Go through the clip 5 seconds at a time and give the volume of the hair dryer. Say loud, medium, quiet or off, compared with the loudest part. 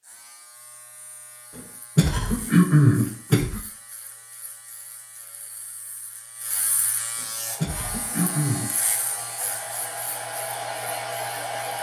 off, medium, loud.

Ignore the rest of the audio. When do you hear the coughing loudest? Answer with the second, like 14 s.
3 s.